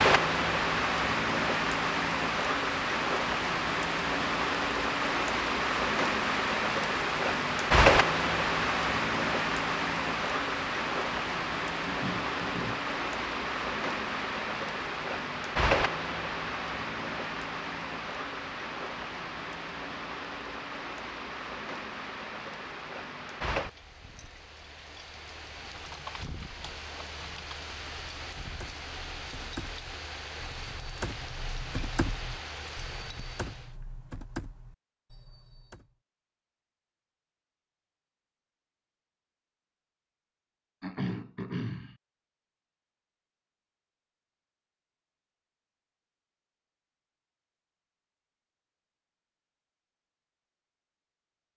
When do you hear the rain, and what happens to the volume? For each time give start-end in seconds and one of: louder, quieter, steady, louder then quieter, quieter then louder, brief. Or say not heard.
0.0-33.8 quieter.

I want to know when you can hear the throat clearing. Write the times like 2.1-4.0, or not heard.
11.8-12.8, 40.8-42.0.